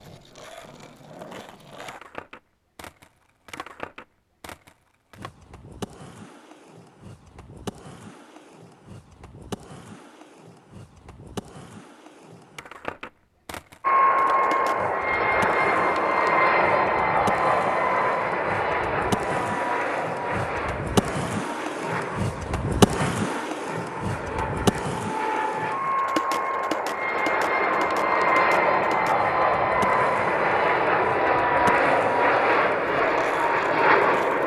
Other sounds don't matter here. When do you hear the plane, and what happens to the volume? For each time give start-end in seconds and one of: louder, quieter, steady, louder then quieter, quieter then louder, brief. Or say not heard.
13.8-34.4 quieter then louder.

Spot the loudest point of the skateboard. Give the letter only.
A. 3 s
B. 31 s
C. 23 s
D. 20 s
C.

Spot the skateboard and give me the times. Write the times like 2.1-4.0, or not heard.
0.0-34.4.